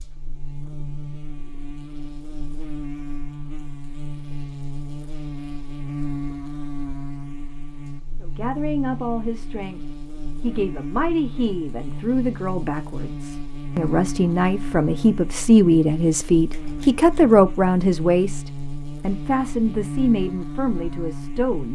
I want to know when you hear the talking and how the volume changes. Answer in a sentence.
You can hear the talking briefly from 8.2 to 9.8 s; and from 10.4 to 21.7 s, getting louder then quieter.